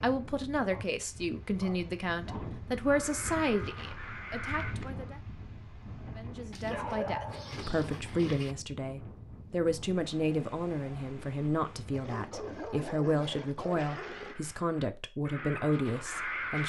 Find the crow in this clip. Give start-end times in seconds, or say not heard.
2.8-5.1, 13.7-16.6.